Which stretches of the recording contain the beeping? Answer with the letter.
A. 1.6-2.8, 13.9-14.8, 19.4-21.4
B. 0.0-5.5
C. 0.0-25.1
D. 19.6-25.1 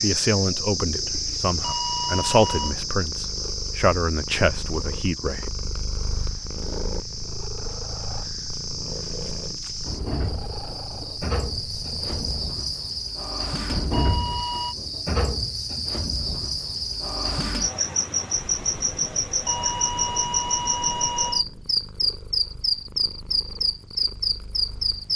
A.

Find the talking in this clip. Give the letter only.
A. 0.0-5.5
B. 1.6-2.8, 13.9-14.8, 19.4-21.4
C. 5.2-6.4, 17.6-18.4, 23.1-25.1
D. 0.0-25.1
A.